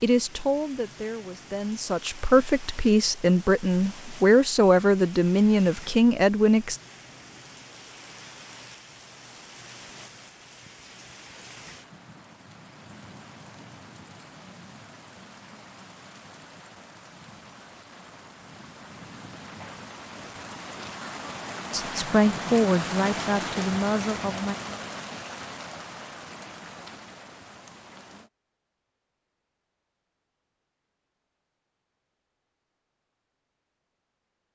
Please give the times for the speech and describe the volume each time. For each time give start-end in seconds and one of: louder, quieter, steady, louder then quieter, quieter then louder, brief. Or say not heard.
0.0-6.8 louder
21.7-24.6 brief.